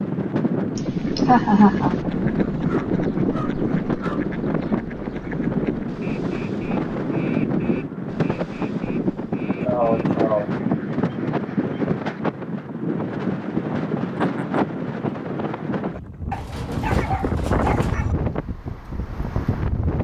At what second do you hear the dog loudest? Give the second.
17 s.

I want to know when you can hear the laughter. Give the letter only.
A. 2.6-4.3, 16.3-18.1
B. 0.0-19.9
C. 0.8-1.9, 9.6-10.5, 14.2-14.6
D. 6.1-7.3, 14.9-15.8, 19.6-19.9
C.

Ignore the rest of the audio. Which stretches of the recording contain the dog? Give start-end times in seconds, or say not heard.
2.6-4.3, 16.3-18.1.